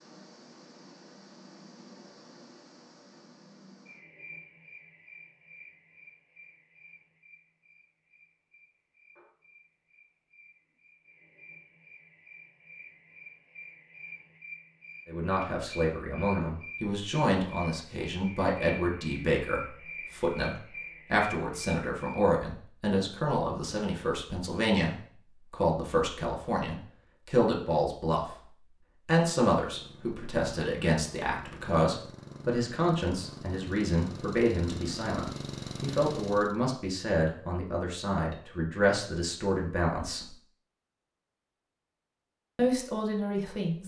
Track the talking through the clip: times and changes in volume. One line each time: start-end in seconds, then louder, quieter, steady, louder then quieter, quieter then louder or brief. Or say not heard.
15.1-40.3 steady
42.5-43.8 brief.